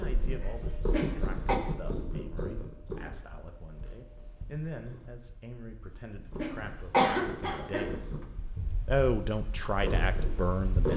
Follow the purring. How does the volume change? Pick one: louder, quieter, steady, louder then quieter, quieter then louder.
quieter then louder.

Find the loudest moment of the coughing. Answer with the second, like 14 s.
7 s.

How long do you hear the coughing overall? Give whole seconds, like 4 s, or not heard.
2 s.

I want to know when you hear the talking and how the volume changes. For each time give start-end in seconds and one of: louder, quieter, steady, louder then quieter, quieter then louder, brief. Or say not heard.
0.0-10.9 louder.